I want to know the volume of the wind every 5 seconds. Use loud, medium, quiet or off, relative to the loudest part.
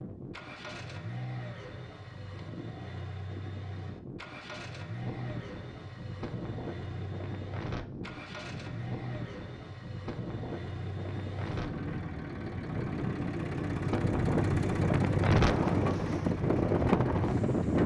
off, quiet, medium, loud.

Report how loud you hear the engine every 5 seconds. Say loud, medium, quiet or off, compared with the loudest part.
medium, medium, loud, loud.